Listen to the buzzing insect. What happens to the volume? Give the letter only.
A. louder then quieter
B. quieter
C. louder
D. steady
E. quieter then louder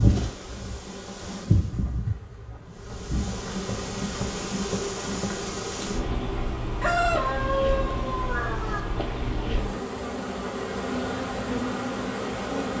D.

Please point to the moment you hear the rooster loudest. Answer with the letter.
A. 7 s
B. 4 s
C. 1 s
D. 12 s
A.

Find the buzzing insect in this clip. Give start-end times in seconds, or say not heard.
0.0-12.7.